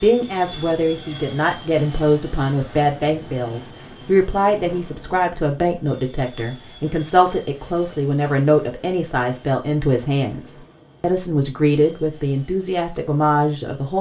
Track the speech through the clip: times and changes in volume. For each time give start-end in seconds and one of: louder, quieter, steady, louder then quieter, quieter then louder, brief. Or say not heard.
0.0-13.9 steady.